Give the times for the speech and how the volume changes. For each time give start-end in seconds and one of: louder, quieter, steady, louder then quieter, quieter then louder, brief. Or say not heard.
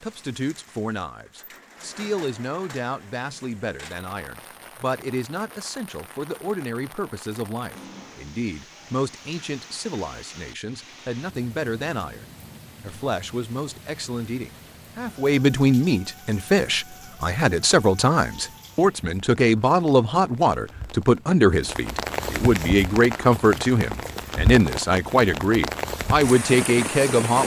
0.0-27.4 louder.